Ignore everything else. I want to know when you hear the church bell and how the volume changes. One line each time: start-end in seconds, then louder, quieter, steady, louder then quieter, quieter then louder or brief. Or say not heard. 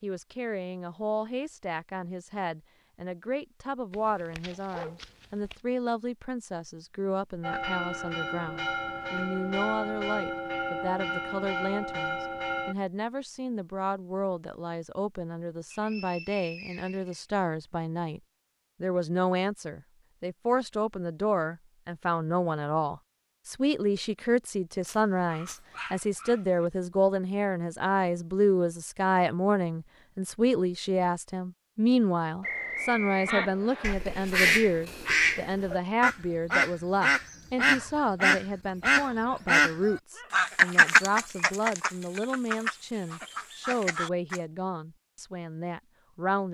7.4-12.8 steady.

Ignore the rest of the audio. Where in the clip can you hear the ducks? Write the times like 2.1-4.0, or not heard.
33.2-44.4.